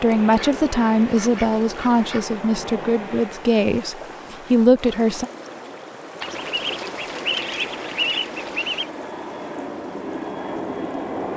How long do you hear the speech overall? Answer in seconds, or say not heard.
5 s.